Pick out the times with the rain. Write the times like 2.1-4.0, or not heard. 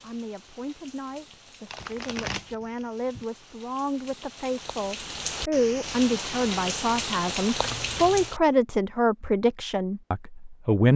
0.0-8.4.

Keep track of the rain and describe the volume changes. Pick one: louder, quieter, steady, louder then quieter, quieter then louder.
louder.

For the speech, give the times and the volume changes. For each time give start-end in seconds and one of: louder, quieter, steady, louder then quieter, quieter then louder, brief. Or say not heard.
0.0-10.9 louder.